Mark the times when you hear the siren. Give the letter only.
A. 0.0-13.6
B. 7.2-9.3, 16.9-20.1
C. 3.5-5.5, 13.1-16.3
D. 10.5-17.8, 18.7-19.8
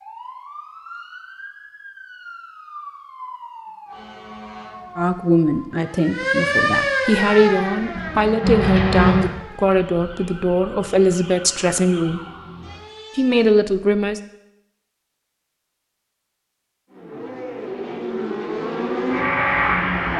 A.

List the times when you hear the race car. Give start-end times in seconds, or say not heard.
7.2-9.3, 16.9-20.1.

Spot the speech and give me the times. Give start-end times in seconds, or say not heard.
5.0-12.2, 13.2-14.2.